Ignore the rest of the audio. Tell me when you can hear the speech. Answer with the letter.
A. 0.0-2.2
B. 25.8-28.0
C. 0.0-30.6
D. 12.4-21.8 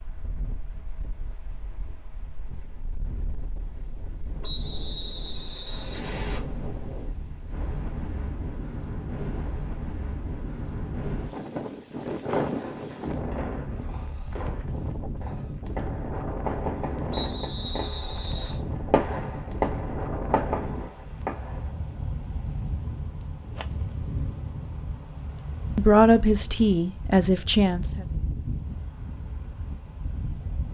B.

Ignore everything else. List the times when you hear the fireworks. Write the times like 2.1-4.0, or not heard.
12.4-21.8.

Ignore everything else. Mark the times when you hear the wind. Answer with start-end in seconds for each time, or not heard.
0.0-30.6.